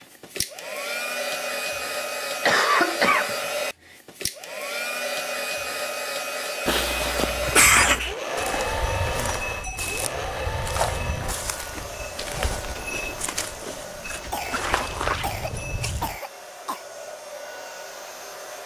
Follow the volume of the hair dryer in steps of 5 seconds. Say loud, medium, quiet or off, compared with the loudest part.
loud, loud, medium, medium.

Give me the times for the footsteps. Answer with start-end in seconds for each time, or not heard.
7.2-16.2.